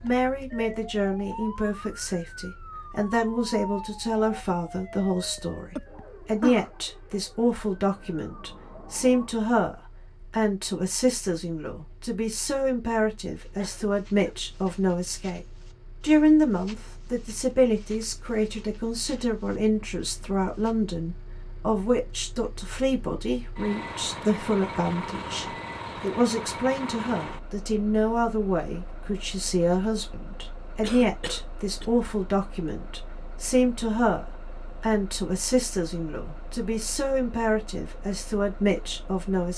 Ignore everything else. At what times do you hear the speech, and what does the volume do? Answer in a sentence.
You can hear the speech from 0.0 to 39.5 s, at a steady volume.